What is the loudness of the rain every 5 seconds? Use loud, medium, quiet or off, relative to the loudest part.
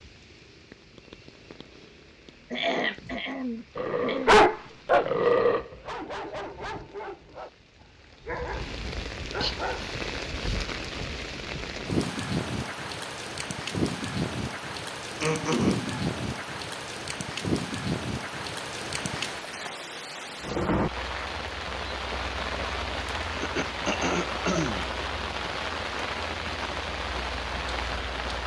quiet, medium, loud, loud, loud, loud.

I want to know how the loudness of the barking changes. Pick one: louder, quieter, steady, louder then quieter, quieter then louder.
quieter.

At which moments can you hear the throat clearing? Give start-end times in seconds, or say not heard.
2.5-4.5, 15.2-16.1, 23.4-24.9.